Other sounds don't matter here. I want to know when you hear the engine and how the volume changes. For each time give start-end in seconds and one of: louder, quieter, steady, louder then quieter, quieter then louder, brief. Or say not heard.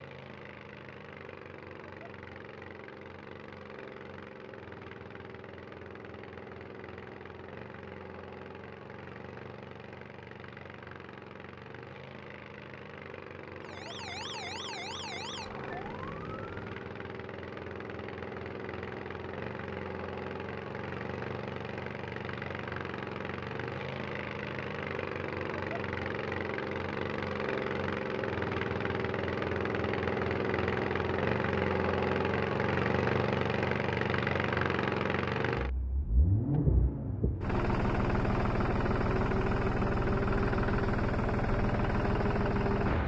0.0-43.0 louder.